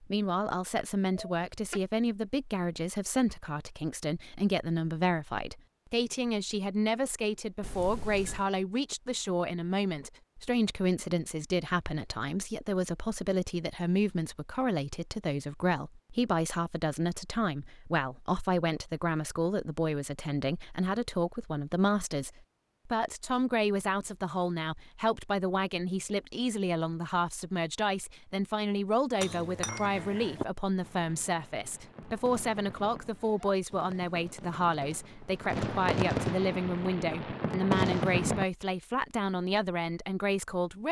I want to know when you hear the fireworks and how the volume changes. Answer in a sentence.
You can hear the fireworks from 30.8 to 38.5 s, getting louder.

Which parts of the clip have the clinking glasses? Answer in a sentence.
The clinking glasses can be heard from 7.6 to 8.4 s and from 29.2 to 30.4 s.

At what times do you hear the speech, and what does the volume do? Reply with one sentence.
You can hear the speech from 0.0 to 40.8 s, at a steady volume.